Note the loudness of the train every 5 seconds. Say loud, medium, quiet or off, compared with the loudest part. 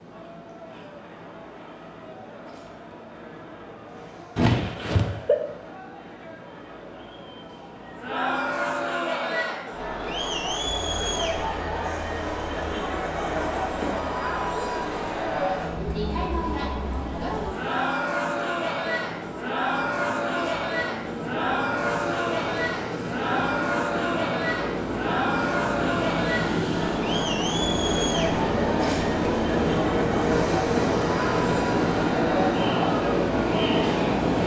quiet, quiet, quiet, quiet, medium, loud, loud.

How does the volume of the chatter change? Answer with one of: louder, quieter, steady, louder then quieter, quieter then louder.
louder.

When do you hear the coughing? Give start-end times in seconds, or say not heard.
4.3-5.3.